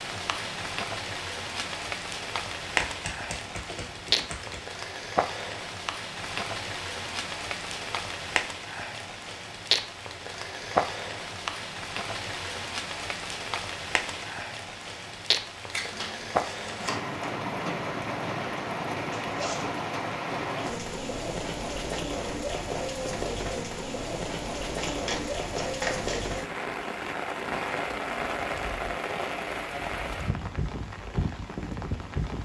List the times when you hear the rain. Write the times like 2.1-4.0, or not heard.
0.0-32.4.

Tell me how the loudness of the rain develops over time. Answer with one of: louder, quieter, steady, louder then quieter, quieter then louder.
steady.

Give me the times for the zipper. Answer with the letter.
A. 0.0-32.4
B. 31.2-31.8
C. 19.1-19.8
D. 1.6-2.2
C.